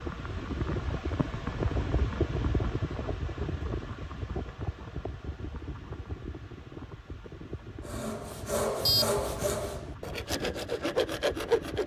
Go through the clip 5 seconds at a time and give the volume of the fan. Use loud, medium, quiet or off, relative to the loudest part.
loud, medium, medium.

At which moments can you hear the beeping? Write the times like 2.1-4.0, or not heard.
8.8-9.6.